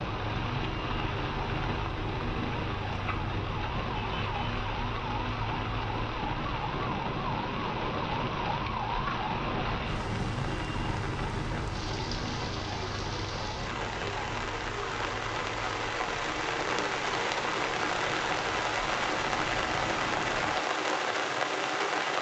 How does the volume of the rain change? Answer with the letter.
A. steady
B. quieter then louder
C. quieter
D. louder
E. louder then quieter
D.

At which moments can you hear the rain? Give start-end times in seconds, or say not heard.
0.0-22.1.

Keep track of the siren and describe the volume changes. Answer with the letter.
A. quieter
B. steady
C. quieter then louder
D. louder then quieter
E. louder
A.